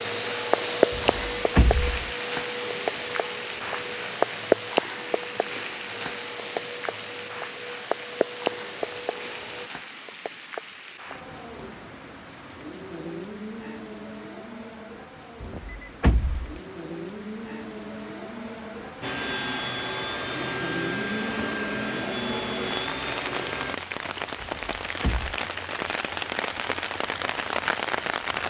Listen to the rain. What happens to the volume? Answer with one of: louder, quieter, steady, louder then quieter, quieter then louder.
quieter then louder.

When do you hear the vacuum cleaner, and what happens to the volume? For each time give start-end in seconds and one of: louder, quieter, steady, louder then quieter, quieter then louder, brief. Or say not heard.
0.0-9.7 quieter
19.0-23.8 steady.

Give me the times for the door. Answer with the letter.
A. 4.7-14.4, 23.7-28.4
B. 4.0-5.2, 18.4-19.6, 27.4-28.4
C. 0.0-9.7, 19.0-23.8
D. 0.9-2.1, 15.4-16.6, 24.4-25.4
D.